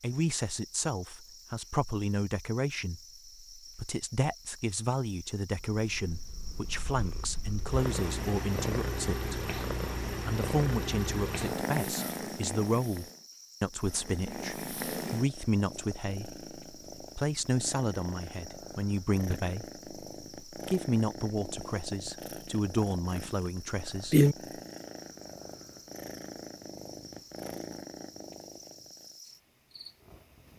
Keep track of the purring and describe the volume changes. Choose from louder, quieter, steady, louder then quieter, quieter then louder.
quieter then louder.